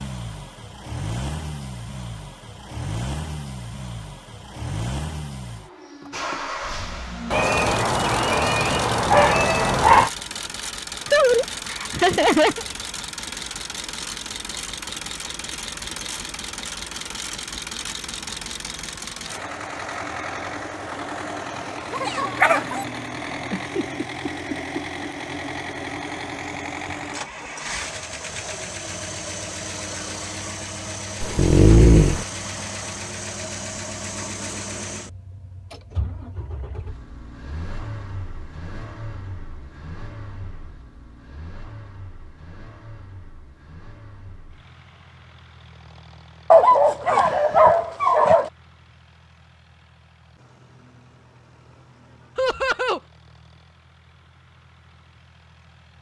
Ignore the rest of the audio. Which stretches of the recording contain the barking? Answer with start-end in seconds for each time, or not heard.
7.3-10.1, 21.9-22.9, 31.2-32.2, 46.5-48.5.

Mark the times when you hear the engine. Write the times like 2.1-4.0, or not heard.
0.0-55.9.